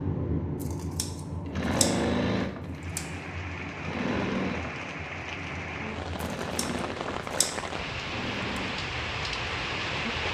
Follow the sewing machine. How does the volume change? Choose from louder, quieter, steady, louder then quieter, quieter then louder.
quieter.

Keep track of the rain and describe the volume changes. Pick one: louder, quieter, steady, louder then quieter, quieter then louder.
louder.